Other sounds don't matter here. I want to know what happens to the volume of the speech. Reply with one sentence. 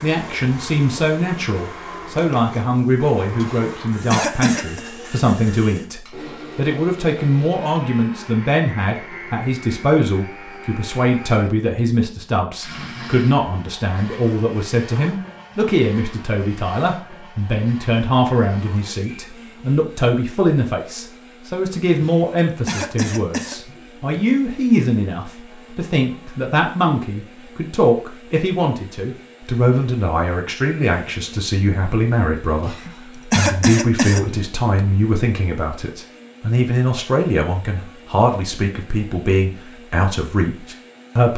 The volume of the speech stays about the same.